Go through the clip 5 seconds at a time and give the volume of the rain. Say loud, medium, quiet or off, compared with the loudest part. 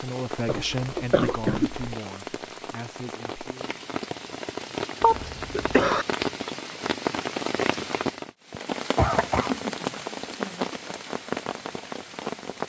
medium, loud, loud.